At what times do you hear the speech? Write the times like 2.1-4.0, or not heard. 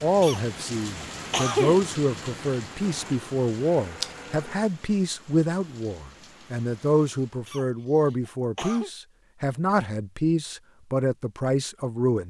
0.0-12.2.